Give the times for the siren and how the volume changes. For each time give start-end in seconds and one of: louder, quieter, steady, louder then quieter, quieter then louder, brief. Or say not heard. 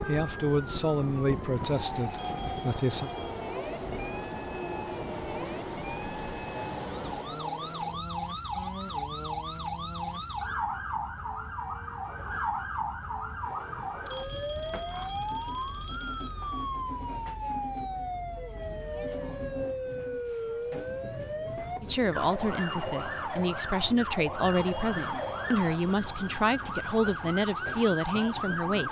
0.1-28.8 louder.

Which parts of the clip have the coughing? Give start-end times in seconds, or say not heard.
not heard.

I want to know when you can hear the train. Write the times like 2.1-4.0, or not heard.
0.0-28.8.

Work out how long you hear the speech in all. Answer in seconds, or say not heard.
10 s.